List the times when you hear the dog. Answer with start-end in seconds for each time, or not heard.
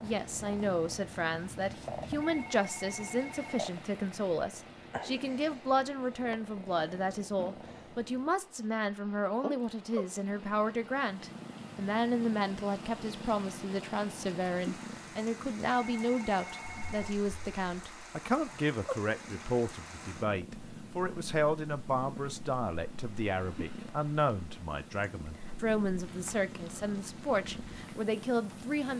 not heard.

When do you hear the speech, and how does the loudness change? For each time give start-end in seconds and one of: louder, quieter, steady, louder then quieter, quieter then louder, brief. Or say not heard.
0.0-28.9 steady.